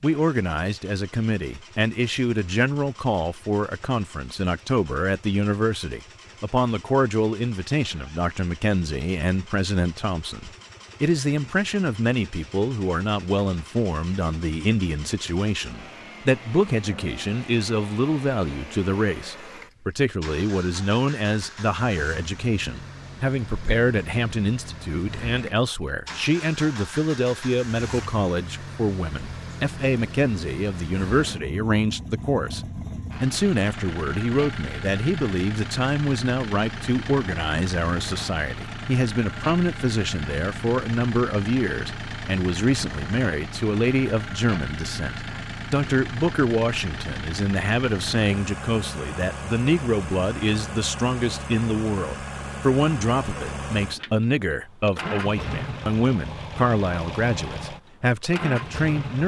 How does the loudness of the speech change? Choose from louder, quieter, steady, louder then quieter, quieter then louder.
steady.